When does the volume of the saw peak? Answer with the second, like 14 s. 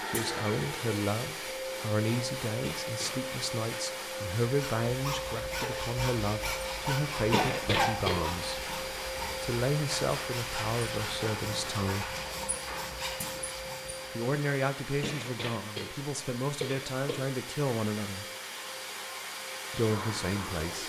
8 s.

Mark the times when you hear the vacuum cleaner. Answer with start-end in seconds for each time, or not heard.
0.0-20.8.